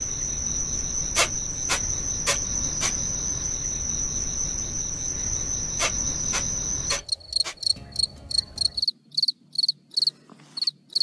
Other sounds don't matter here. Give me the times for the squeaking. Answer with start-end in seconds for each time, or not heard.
1.1-3.0, 5.8-7.5.